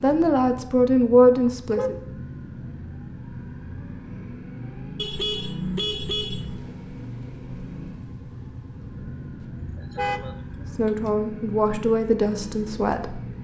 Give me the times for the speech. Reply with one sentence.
You can hear the speech from 0.0 to 1.9 s and from 10.6 to 13.2 s.